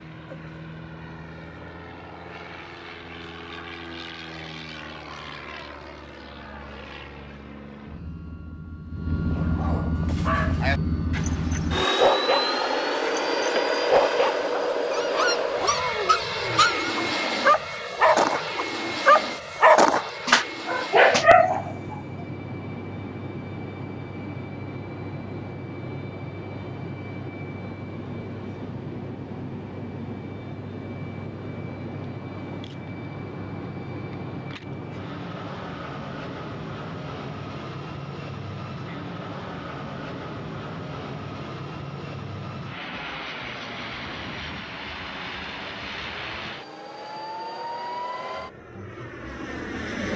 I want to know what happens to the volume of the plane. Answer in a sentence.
The loudness of the plane goes up, then down.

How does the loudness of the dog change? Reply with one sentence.
The loudness of the dog goes up.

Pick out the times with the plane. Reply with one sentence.
You can hear the plane from 0.0 to 50.1 s.